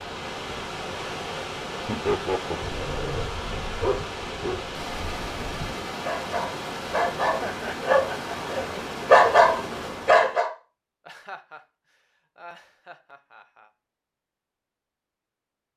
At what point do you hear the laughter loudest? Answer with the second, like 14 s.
2 s.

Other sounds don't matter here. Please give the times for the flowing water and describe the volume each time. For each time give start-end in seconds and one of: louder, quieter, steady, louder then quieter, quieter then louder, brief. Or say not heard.
0.0-10.4 steady.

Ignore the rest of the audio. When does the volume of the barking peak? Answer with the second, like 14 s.
9 s.